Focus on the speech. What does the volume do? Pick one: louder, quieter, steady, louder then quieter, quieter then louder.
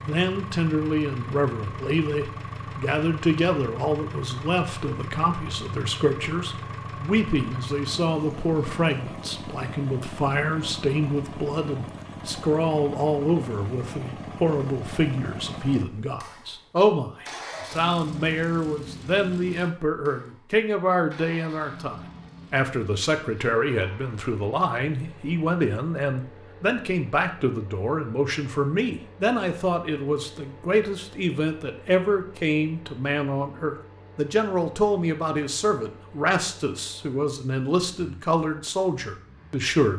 steady.